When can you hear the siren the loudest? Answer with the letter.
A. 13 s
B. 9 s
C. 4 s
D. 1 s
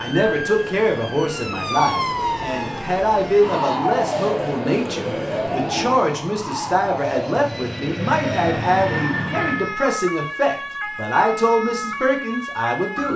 C.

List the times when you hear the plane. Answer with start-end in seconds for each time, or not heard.
0.0-9.8.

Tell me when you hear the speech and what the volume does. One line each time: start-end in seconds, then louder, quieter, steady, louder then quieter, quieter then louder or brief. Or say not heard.
0.0-13.1 steady.